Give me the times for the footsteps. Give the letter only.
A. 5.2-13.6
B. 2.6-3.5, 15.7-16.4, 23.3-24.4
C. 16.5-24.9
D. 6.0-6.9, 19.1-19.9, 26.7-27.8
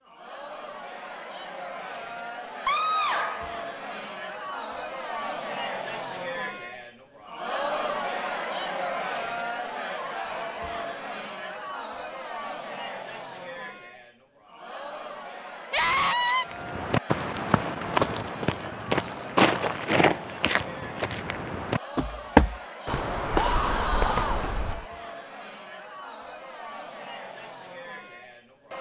C.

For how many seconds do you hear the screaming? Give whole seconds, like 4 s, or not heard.
3 s.